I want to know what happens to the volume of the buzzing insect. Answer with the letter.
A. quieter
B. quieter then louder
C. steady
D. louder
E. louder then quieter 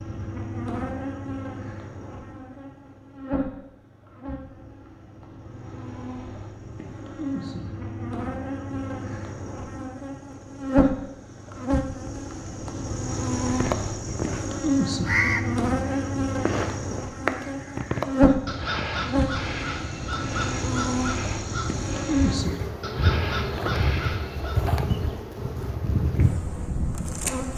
D.